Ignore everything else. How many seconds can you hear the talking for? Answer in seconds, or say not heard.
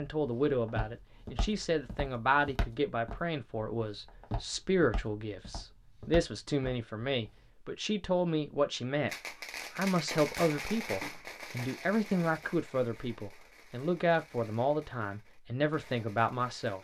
16 s.